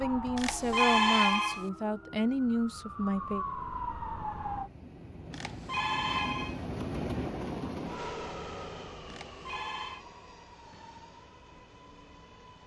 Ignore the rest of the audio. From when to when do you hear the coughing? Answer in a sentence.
The coughing can't be heard in this clip.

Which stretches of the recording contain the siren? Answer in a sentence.
The siren can be heard from 0.0 to 4.7 s.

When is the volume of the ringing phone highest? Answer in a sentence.
The volume of the ringing phone peaks at 1 second.